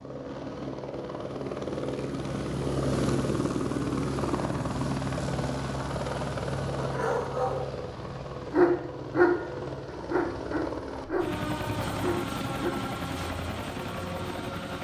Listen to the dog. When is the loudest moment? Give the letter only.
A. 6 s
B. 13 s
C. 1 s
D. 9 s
D.